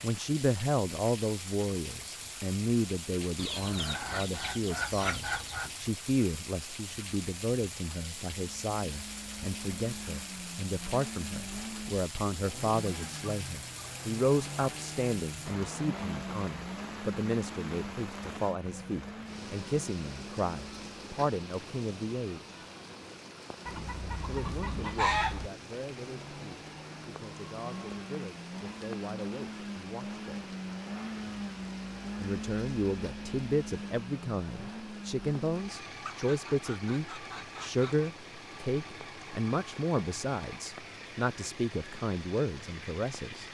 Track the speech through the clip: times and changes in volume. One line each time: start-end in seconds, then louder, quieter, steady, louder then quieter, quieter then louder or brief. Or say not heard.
0.0-22.6 steady
24.2-30.4 steady
32.1-43.5 steady.